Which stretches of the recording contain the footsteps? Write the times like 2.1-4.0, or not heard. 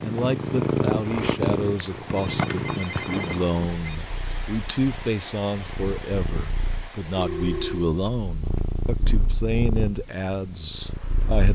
not heard.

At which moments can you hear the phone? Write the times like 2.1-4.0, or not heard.
2.2-4.0, 7.2-7.9.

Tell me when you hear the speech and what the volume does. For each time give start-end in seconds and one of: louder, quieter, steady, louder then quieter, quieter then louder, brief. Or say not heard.
0.0-11.4 steady.